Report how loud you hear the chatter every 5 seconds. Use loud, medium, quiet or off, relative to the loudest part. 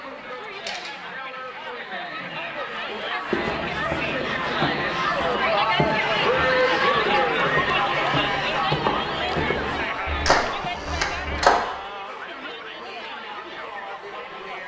medium, loud, medium.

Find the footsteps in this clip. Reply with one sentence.
The footsteps can be heard from 3.3 to 10.7 s.